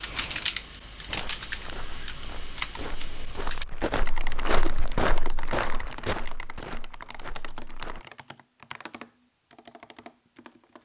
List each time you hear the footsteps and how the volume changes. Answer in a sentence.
The footsteps can be heard from 1.1 to 8.1 s, getting louder then quieter.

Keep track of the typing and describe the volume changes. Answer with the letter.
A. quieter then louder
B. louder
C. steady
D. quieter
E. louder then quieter
D.